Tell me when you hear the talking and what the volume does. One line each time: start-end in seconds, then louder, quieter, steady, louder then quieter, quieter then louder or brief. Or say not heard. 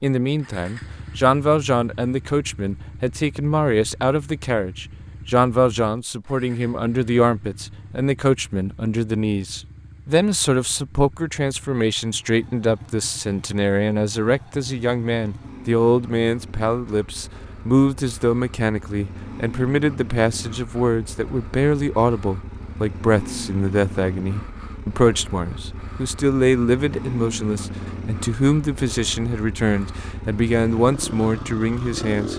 0.0-32.3 steady.